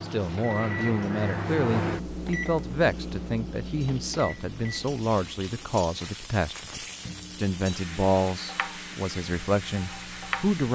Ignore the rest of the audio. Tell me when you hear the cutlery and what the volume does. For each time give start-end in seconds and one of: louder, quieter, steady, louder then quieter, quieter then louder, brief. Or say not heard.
not heard.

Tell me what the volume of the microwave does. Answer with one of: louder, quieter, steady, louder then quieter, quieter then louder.
quieter.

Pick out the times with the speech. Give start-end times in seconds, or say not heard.
0.0-10.7.